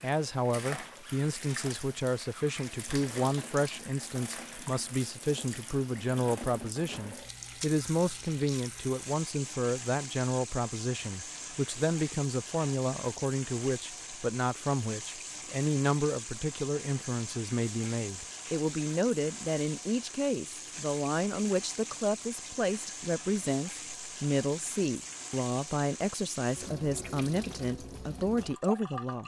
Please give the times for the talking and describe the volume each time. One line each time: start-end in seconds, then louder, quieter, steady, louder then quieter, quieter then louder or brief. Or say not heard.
0.0-29.2 steady.